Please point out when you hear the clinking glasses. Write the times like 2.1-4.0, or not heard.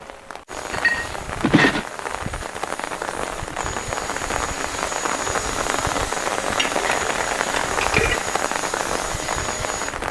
0.7-1.9, 6.5-8.2.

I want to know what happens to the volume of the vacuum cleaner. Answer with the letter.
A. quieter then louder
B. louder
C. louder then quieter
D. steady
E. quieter
B.